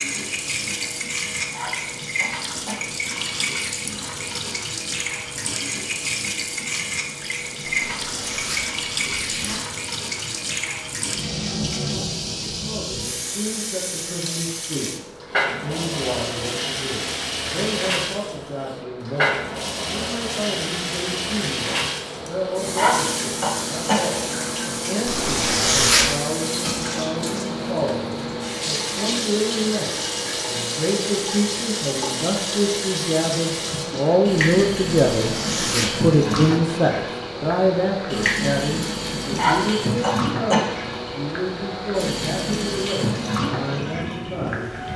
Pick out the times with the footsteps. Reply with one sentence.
You can't hear the footsteps here.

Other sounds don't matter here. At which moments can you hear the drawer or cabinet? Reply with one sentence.
The drawer or cabinet can't be heard in this clip.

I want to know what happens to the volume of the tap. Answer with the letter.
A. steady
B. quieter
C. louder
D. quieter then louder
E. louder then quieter
A.